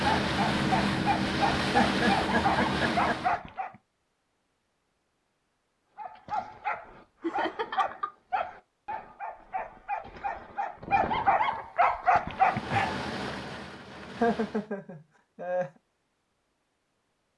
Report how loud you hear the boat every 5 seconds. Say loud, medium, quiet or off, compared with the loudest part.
loud, off, medium, off.